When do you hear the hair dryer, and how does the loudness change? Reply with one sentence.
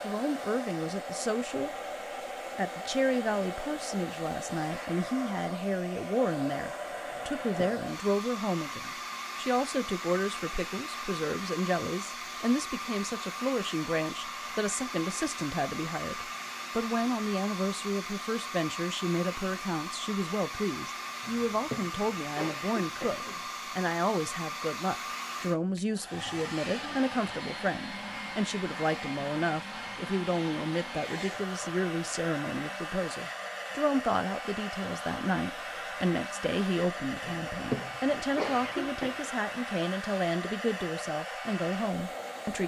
The hair dryer can be heard from 0.0 to 42.6 s, at a steady volume.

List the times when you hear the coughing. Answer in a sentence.
You can hear the coughing from 7.1 to 7.8 s, from 21.2 to 23.4 s and from 37.2 to 39.2 s.